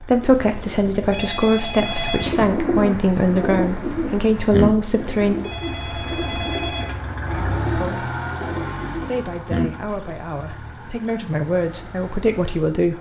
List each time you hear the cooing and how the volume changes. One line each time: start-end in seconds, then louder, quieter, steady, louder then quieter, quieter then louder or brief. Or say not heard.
1.8-9.7 quieter.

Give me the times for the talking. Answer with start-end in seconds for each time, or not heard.
0.0-5.3, 7.8-8.2, 9.1-12.9.